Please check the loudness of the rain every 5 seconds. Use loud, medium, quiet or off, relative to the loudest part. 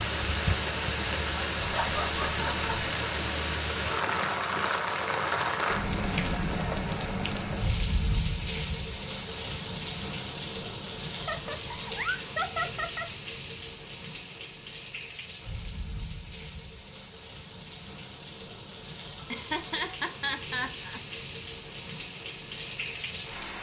loud, loud, medium, quiet, medium.